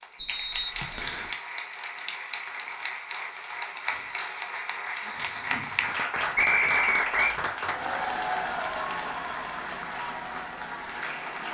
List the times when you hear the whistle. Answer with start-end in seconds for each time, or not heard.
0.1-1.3, 6.3-7.3.